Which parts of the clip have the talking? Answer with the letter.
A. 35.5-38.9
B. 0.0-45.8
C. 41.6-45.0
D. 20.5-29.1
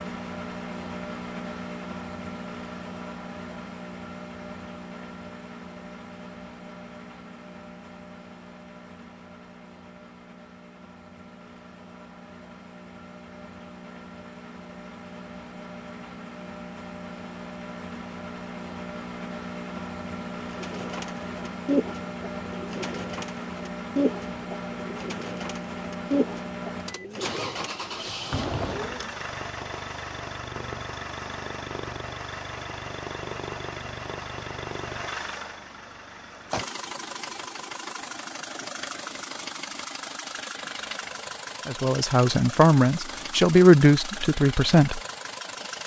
C.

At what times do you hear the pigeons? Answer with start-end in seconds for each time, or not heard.
20.5-29.1.